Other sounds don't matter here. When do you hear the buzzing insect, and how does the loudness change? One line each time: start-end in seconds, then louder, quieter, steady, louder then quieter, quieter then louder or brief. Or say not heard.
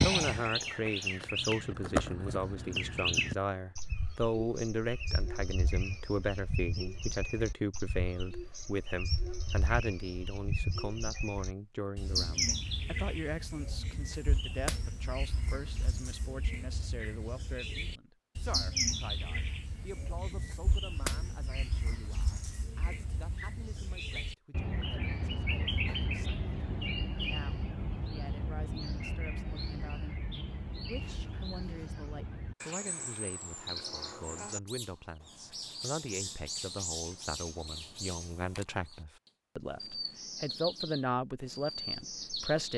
not heard.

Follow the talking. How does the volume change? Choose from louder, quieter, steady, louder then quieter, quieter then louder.
quieter then louder.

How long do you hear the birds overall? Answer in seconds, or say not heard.
43 s.